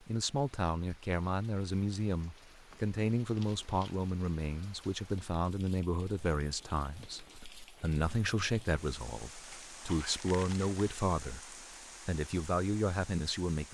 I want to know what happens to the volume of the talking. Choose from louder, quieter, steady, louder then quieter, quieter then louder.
steady.